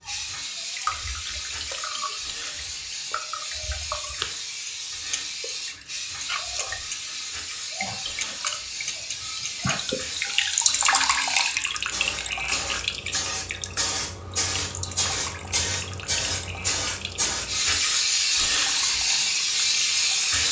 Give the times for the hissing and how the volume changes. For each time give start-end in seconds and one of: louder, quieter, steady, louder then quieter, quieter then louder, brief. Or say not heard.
0.0-20.4 louder.